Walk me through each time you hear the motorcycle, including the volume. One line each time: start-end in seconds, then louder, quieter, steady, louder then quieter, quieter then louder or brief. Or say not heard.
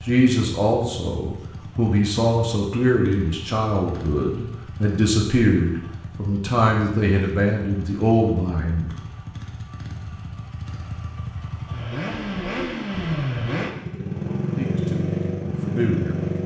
0.0-16.4 louder.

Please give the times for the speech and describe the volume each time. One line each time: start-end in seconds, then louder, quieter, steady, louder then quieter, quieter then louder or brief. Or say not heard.
0.1-8.9 steady
14.4-16.3 brief.